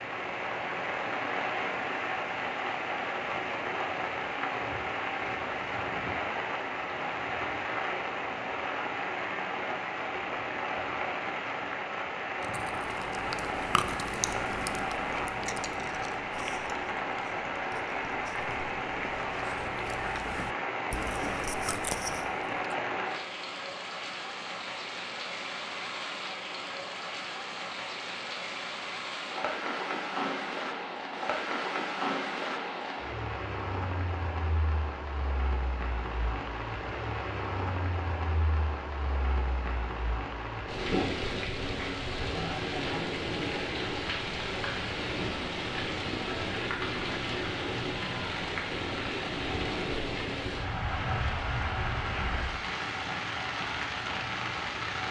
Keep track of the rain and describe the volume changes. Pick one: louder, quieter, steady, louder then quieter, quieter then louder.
steady.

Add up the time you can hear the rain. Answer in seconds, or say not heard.
55 s.